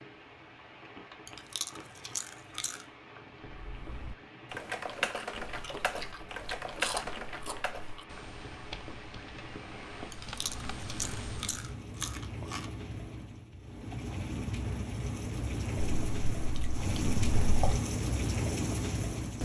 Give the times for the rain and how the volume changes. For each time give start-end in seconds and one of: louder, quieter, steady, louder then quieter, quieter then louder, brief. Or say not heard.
0.0-19.4 louder.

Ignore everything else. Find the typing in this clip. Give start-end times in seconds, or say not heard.
3.5-11.7.